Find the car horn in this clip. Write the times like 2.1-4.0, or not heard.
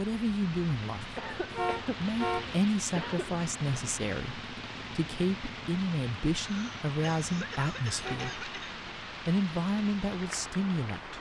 1.5-2.6, 8.0-8.4.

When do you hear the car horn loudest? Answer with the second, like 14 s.
2 s.